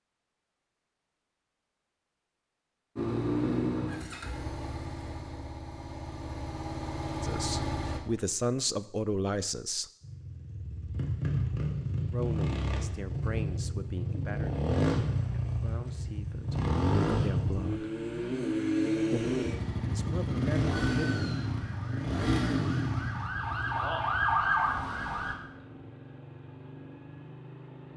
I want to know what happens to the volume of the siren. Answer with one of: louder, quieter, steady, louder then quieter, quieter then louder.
quieter then louder.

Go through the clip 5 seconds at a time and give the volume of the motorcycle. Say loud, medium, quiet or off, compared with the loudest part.
loud, medium, loud, loud, loud, quiet.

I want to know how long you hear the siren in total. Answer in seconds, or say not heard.
5 s.